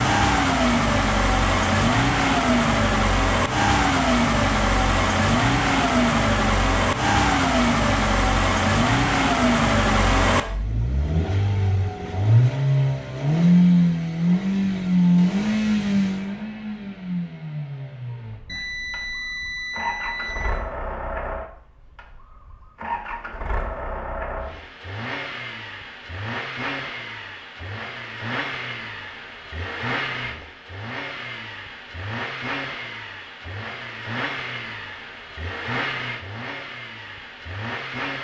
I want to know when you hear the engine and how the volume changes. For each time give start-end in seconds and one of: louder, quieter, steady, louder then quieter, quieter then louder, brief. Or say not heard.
0.0-38.1 quieter.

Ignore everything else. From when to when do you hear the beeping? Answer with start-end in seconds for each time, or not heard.
18.4-20.5.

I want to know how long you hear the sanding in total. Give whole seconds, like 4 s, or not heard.
not heard.